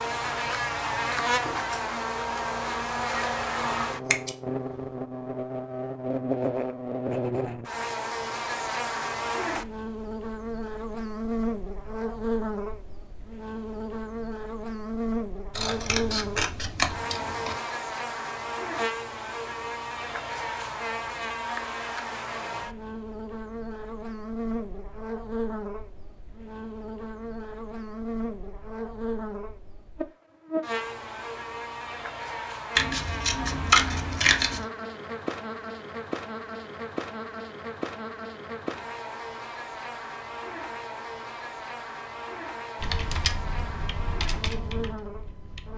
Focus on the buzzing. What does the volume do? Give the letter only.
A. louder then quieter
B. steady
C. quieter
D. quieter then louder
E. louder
C.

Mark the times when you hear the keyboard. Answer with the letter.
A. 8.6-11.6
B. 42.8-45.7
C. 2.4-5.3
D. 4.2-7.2
B.